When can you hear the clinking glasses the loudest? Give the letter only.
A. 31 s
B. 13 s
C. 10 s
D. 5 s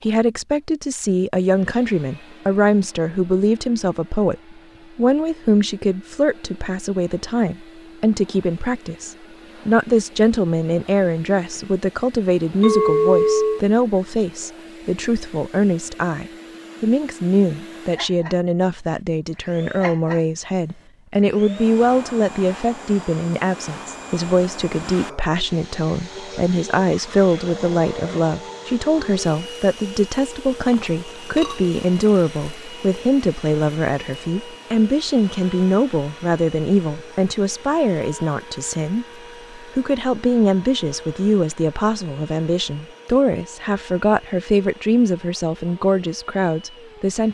B.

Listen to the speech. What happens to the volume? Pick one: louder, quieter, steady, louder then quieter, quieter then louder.
steady.